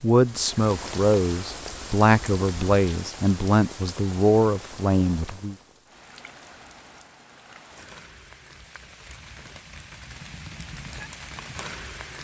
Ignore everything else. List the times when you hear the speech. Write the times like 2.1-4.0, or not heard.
0.0-5.5.